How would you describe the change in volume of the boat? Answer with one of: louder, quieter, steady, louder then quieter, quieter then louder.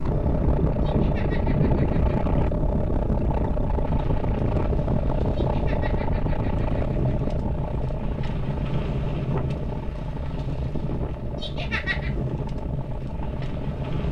quieter.